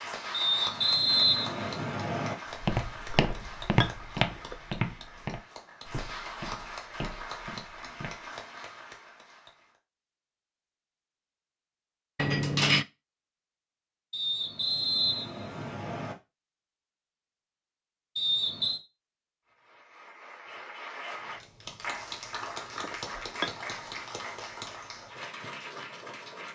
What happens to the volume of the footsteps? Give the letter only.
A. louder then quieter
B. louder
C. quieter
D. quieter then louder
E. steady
C.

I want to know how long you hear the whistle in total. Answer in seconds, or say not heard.
5 s.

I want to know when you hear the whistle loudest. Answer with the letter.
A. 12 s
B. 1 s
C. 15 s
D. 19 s
B.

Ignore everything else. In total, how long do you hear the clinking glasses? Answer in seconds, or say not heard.
2 s.